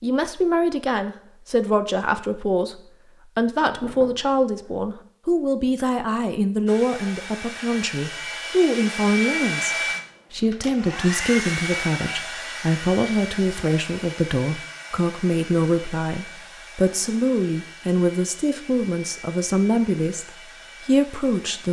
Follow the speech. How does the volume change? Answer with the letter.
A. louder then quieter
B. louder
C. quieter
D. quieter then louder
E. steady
E.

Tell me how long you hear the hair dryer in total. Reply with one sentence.
The hair dryer can be heard for 15 seconds in total.